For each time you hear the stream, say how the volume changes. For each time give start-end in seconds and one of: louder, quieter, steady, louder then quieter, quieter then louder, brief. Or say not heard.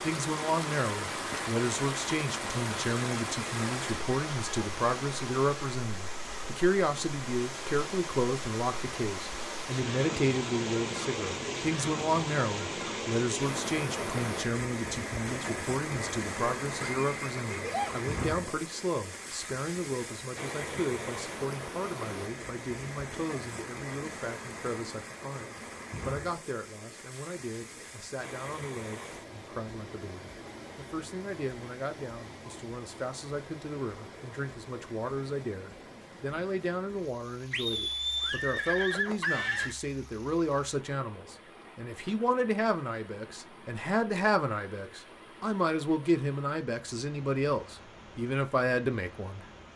0.0-49.7 quieter.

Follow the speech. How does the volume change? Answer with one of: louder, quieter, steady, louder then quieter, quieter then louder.
quieter then louder.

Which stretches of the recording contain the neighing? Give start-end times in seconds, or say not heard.
16.8-18.1, 37.5-39.8.